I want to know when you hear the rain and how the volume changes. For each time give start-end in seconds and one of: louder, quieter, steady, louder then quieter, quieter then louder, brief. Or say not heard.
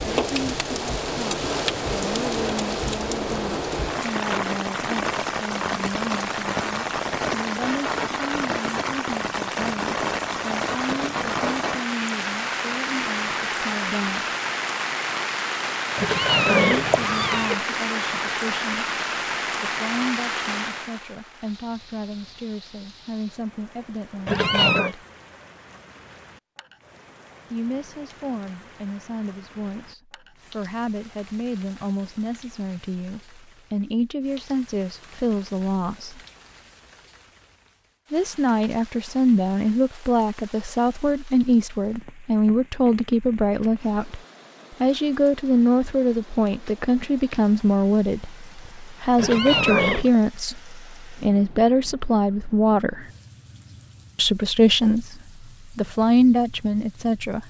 0.0-57.4 quieter.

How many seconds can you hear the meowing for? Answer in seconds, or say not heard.
3 s.